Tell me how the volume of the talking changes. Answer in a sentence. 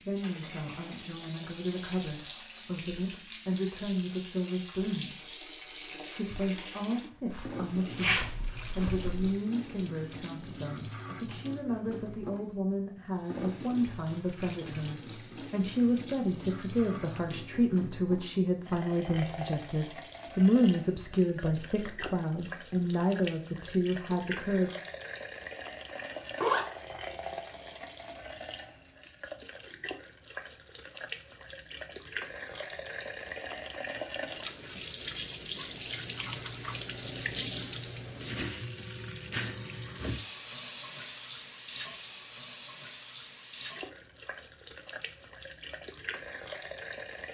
The loudness of the talking goes up.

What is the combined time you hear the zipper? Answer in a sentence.
You can hear the zipper for 3 seconds altogether.